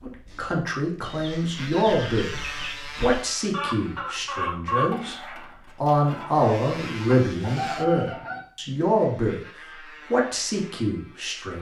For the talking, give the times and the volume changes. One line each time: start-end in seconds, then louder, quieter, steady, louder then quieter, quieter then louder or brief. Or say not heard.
0.0-2.3 brief
3.0-9.4 louder
10.1-11.5 brief.